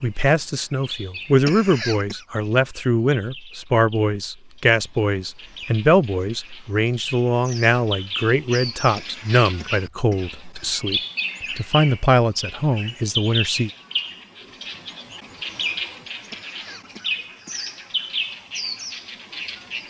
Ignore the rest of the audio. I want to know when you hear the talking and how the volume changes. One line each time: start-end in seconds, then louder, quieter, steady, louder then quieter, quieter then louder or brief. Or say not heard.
0.0-13.7 steady.